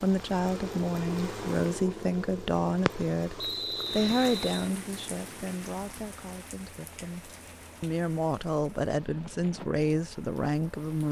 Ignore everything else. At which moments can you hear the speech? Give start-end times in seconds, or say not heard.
0.0-11.0.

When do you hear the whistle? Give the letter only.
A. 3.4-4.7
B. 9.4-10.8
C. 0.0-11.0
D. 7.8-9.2
A.